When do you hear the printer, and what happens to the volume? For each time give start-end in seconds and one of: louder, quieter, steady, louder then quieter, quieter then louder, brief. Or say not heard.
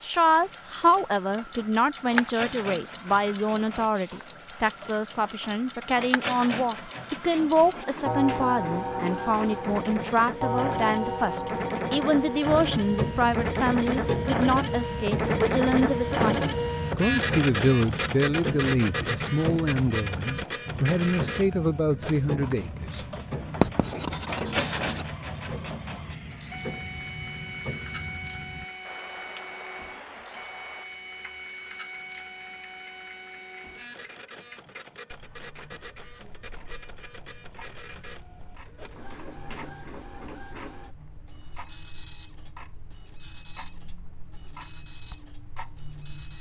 0.0-46.3 louder then quieter.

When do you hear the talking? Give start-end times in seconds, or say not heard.
0.0-23.6.